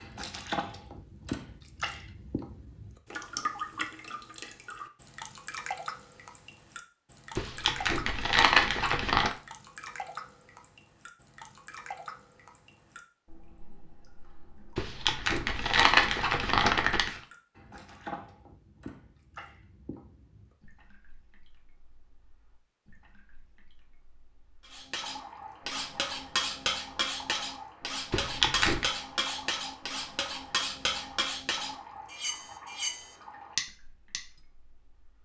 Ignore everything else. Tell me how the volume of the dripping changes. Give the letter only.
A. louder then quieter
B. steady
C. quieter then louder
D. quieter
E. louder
D.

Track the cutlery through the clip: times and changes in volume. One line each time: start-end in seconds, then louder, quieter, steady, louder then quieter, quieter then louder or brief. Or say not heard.
24.7-34.2 steady.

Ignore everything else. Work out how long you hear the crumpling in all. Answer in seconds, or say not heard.
5 s.